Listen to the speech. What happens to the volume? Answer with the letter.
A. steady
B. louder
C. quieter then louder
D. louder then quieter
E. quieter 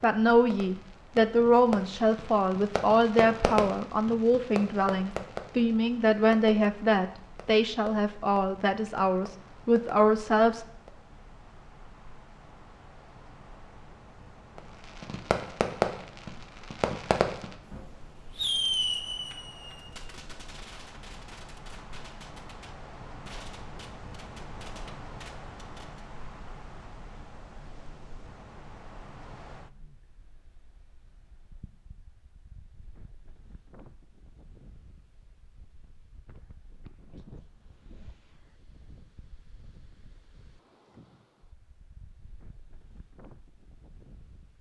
A.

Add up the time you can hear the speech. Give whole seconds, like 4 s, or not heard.
11 s.